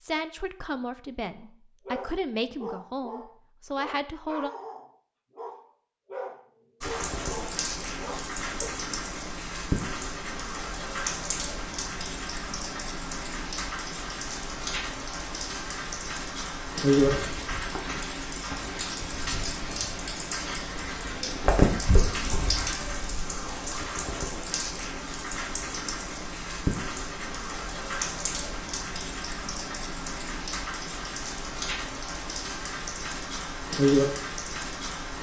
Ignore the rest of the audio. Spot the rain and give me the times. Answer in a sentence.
You can hear the rain from 6.8 to 35.1 s.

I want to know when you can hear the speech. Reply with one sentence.
The speech can be heard from 0.0 to 4.5 s.